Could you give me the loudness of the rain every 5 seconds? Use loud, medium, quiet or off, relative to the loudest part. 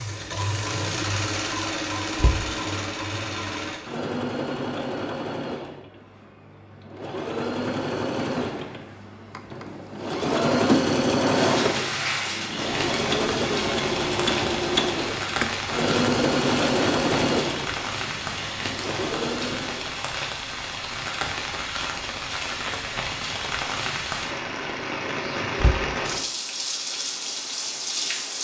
off, off, loud, loud, loud, loud.